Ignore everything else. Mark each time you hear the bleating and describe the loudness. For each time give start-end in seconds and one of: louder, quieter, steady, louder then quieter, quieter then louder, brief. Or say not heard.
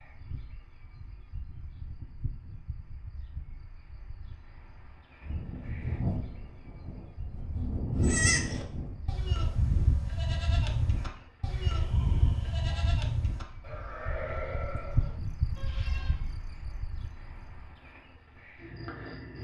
8.0-16.2 quieter.